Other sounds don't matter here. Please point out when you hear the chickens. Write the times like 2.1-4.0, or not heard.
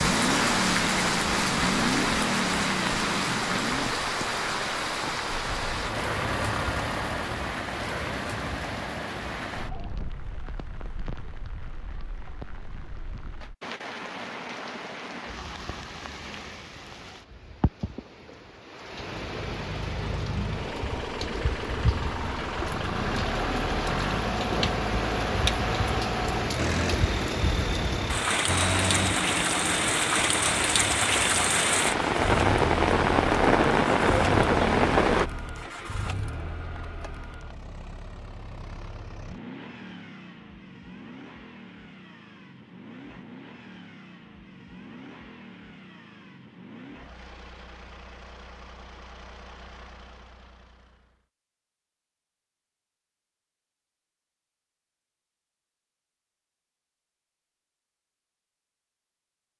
not heard.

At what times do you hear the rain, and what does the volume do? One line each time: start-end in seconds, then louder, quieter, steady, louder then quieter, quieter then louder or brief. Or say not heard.
0.0-35.3 quieter then louder.